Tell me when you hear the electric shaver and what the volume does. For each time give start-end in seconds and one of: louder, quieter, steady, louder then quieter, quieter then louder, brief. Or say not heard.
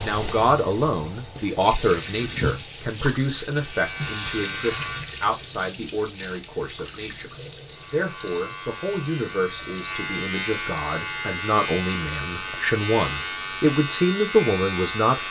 3.5-5.3 brief
7.7-15.2 louder.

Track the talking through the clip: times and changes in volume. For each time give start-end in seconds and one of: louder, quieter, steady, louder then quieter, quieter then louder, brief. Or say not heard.
0.0-15.2 quieter then louder.